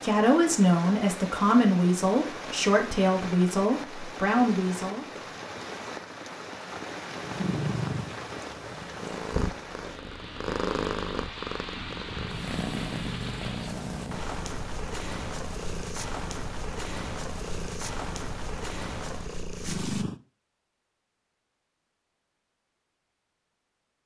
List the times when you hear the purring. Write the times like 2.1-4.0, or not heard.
7.2-20.2.